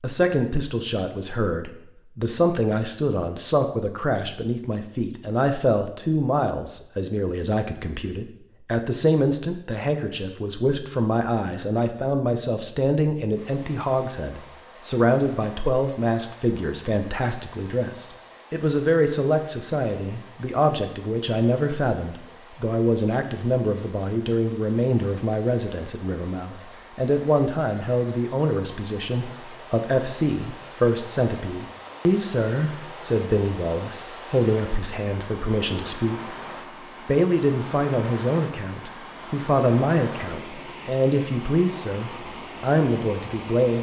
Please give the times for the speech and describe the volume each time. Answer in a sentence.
You can hear the speech from 0.0 to 36.4 s, at a steady volume; and from 37.0 to 43.7 s, at a steady volume.